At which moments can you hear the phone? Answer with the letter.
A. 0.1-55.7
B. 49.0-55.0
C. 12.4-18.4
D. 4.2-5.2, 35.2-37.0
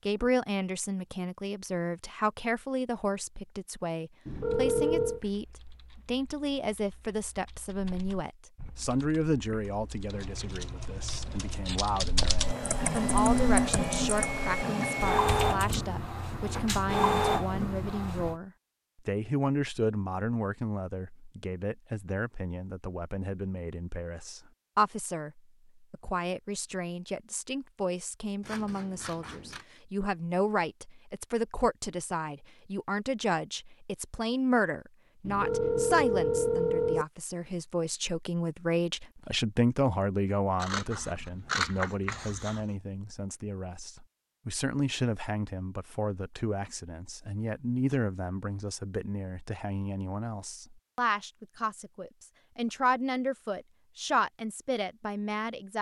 D.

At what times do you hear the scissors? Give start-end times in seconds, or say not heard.
10.1-12.1, 28.4-29.6, 40.6-42.7.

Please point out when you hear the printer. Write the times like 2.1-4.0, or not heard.
12.4-18.4.